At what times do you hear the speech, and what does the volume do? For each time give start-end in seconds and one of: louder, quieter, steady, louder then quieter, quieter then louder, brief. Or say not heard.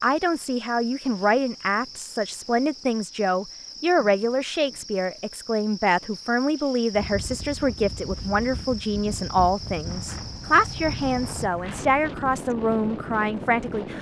0.0-13.9 steady.